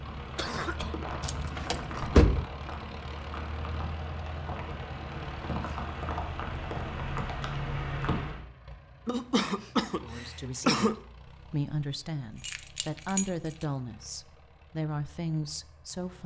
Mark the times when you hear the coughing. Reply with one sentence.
The coughing can be heard from 0.3 to 0.9 s and from 9.1 to 10.9 s.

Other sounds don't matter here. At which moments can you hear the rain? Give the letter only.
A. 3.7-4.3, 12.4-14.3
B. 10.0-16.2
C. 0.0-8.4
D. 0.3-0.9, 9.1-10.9
C.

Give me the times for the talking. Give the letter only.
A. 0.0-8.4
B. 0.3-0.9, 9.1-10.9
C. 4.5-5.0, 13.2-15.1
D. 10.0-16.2
D.